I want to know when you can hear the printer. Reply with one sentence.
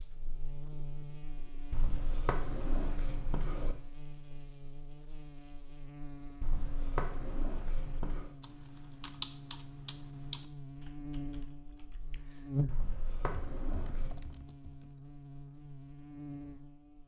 You can't hear the printer here.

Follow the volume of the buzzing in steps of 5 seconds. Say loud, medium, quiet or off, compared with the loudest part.
medium, medium, loud, medium.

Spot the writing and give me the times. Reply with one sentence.
You can hear the writing from 1.7 to 3.8 s, from 6.4 to 8.3 s and from 12.7 to 14.3 s.